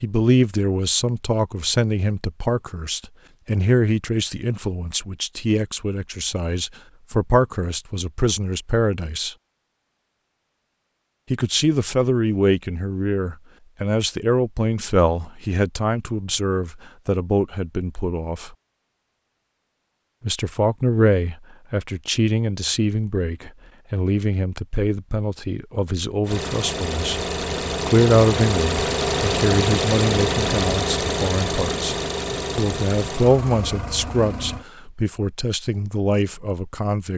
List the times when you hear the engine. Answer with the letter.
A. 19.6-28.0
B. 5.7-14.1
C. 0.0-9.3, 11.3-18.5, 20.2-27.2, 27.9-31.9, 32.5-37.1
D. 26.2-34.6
D.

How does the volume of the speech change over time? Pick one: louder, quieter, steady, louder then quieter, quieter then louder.
steady.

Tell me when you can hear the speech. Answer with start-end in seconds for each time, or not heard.
0.0-9.3, 11.3-18.5, 20.2-27.2, 27.9-31.9, 32.5-37.1.